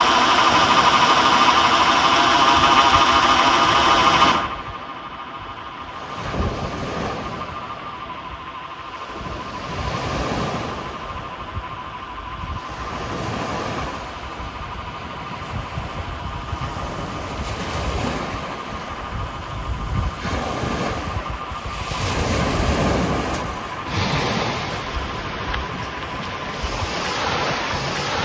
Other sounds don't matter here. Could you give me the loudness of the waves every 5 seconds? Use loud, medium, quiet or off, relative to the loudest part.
medium, medium, medium, medium, loud, loud.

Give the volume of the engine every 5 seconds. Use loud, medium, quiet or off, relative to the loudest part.
loud, quiet, quiet, quiet, quiet, quiet.